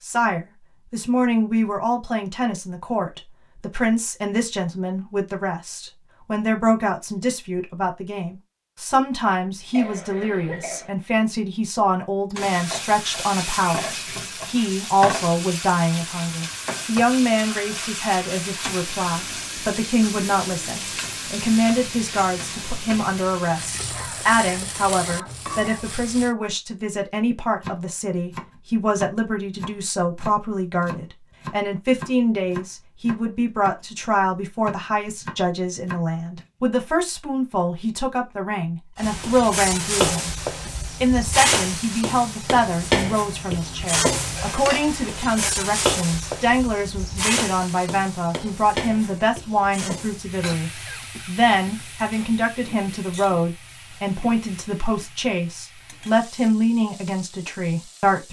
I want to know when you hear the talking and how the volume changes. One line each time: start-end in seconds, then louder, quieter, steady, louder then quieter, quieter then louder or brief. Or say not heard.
0.0-58.2 steady.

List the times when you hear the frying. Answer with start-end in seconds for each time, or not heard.
12.3-26.4, 39.0-58.2.